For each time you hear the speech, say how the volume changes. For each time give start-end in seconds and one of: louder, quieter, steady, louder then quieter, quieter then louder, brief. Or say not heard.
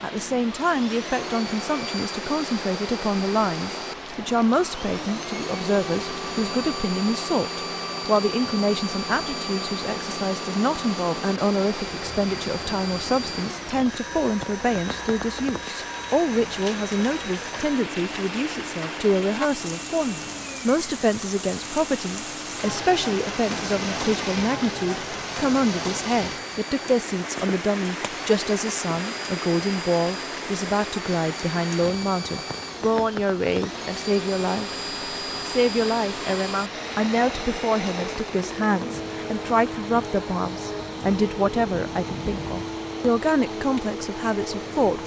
0.0-34.7 steady
35.5-45.0 steady.